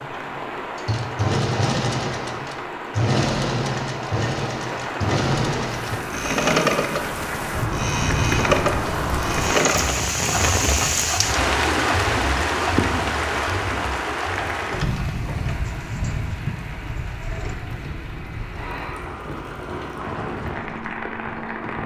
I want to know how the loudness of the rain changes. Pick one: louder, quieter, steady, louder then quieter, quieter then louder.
louder then quieter.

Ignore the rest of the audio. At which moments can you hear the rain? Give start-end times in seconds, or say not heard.
0.0-21.8.